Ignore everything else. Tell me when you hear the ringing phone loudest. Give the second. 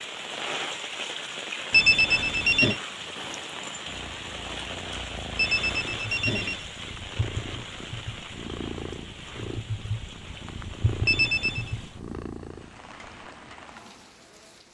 2 s.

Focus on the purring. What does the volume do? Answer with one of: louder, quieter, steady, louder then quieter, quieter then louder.
louder.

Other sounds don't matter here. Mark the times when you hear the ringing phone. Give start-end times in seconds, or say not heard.
1.7-2.8, 5.3-6.7, 11.1-11.7.